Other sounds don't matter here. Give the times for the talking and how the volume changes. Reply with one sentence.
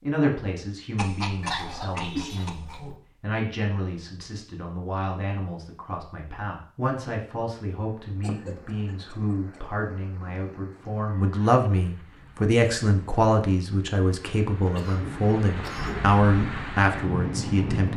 The talking can be heard from 0.0 to 17.9 s, getting louder.